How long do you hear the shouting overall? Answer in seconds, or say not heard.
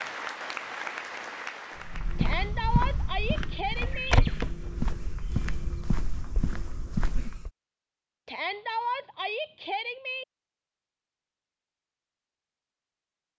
4 s.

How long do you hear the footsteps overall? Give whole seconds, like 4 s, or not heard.
6 s.